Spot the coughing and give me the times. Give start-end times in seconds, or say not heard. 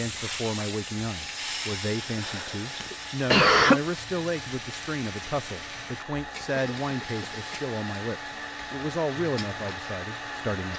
2.1-3.8, 6.5-7.5.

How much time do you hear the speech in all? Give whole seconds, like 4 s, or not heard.
11 s.